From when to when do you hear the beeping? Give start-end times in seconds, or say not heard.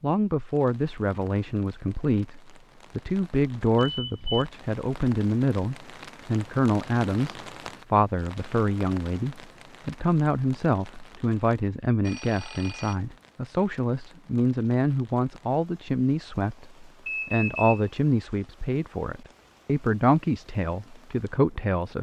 3.8-4.5, 12.1-12.9, 17.1-17.8.